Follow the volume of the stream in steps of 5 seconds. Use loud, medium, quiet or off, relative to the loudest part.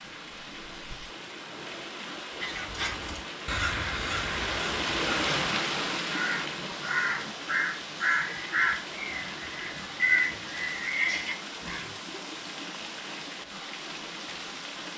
loud, loud, medium.